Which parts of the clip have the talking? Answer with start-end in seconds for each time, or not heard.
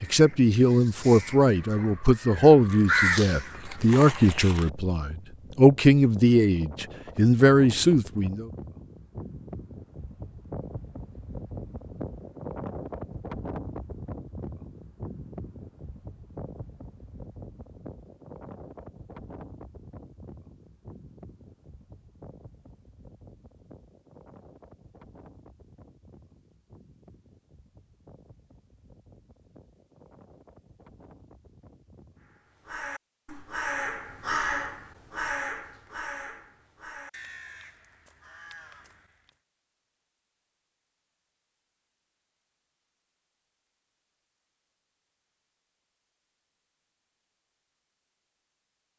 0.0-8.4.